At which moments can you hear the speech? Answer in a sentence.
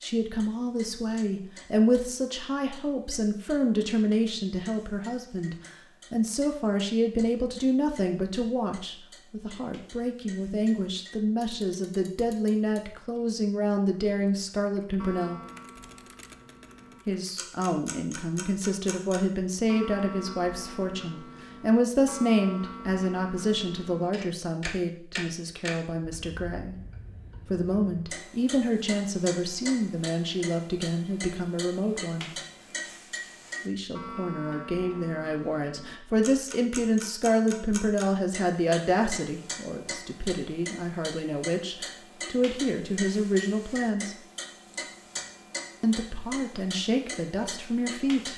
The speech can be heard from 0.0 to 15.4 s, from 17.1 to 26.8 s, from 27.4 to 32.3 s, from 33.6 to 44.1 s and from 45.8 to 48.3 s.